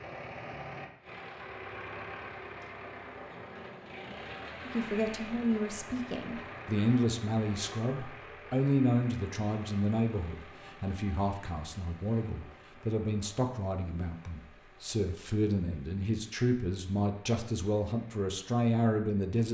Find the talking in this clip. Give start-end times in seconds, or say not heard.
4.7-19.5.